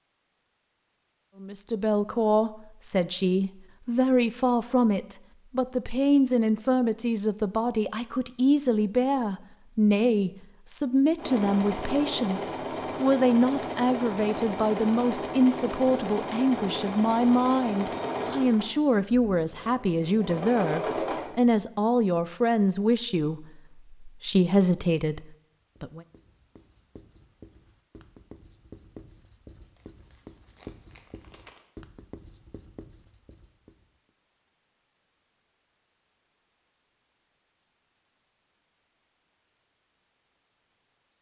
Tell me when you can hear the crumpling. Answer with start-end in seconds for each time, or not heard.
29.8-31.7.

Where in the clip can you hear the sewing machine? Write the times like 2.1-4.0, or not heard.
11.2-21.6.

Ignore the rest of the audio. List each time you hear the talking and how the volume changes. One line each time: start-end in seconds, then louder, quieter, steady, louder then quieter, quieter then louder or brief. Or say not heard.
1.4-26.0 steady.